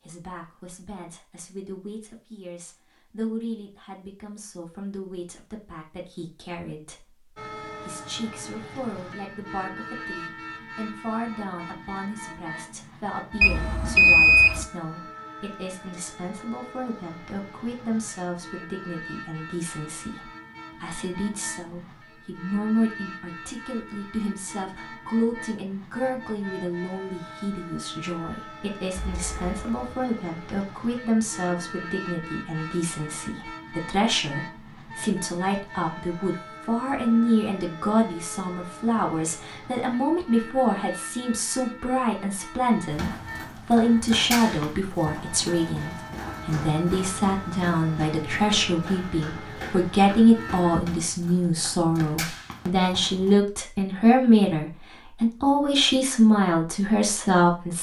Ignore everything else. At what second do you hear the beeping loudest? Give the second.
14 s.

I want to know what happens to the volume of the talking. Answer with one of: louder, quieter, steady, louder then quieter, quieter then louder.
louder.